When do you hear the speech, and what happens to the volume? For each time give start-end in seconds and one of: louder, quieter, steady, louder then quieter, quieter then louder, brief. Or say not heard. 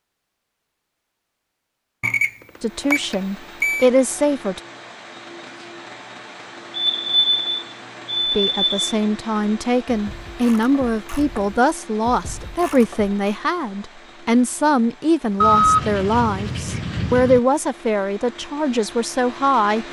2.6-4.6 brief
8.3-19.8 steady.